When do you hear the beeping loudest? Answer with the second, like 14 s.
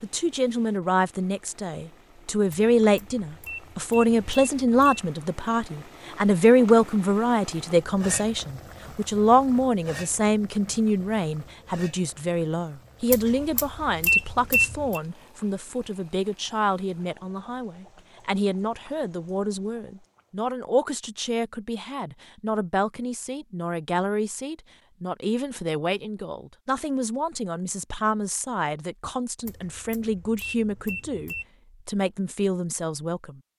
14 s.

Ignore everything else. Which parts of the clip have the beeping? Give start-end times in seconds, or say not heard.
2.5-5.1, 13.1-15.0, 29.4-31.4.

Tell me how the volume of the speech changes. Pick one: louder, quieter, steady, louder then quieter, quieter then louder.
quieter.